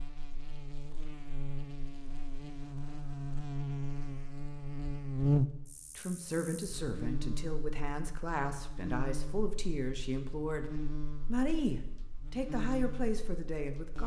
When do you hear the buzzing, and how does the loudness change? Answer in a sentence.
The buzzing can be heard from 0.0 to 14.0 s, getting louder then quieter.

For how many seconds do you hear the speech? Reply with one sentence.
You can hear the speech for 8 seconds altogether.